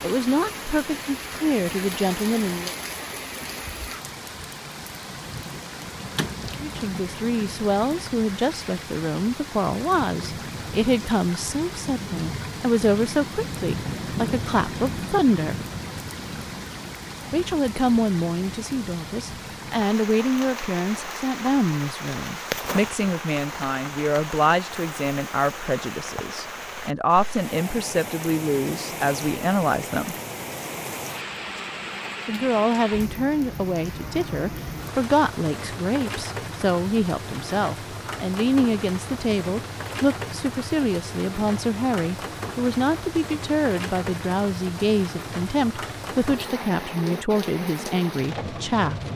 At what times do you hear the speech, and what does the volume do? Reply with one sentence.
You can hear the speech briefly from 0.0 to 2.8 s; from 6.6 to 15.6 s, at a steady volume; from 17.3 to 30.1 s, at a steady volume; and from 32.2 to 49.0 s, at a steady volume.